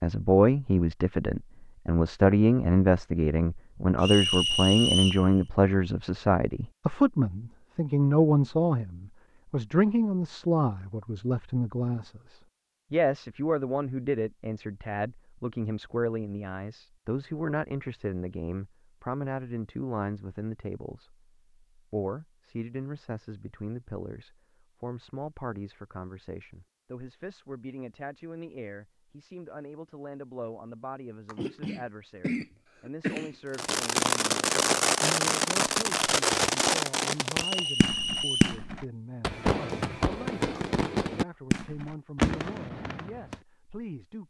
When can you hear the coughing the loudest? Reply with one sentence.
The volume of the coughing peaks at 33 seconds.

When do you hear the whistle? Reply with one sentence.
You can hear the whistle from 4.0 to 5.2 s and from 37.4 to 38.6 s.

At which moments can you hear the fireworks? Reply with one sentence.
The fireworks can be heard from 33.5 to 43.4 s.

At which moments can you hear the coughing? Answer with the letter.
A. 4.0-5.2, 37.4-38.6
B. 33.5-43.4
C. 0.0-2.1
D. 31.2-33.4
D.